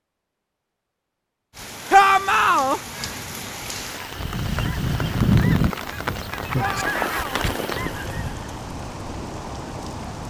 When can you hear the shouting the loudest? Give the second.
2 s.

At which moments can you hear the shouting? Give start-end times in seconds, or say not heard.
1.9-2.8, 6.5-7.5.